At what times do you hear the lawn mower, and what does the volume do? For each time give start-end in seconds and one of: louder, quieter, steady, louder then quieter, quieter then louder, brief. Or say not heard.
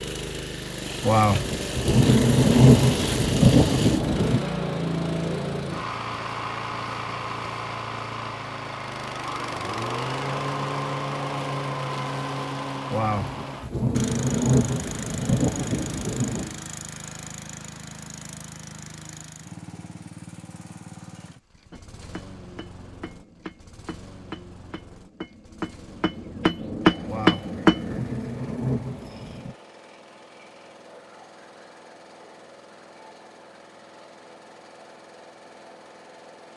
0.0-36.5 quieter.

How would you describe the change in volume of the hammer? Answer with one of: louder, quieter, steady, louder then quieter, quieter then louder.
louder.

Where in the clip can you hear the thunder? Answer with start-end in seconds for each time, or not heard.
1.0-4.5, 12.9-16.6, 27.1-29.6.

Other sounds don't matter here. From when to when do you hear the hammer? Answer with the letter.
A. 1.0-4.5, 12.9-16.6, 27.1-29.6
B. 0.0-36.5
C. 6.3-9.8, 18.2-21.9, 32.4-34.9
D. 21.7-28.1
D.